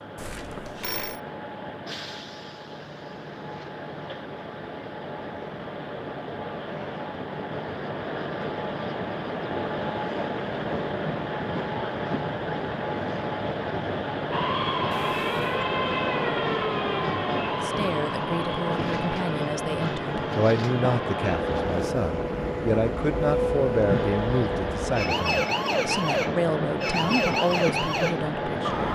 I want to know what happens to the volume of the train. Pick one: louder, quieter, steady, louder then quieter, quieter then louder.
louder.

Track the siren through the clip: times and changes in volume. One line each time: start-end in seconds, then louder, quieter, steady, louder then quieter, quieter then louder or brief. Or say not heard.
14.3-28.8 quieter then louder.